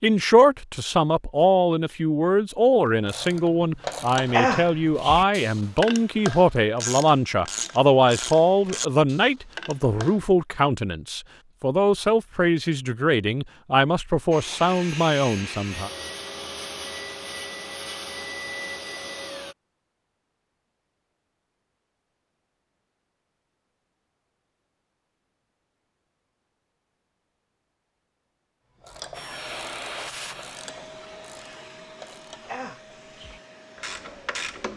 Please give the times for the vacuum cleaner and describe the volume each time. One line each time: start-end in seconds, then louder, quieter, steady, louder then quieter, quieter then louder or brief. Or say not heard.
14.3-19.6 steady
29.1-34.5 quieter.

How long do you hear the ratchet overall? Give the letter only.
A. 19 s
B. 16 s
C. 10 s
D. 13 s
D.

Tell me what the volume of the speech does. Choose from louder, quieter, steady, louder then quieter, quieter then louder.
steady.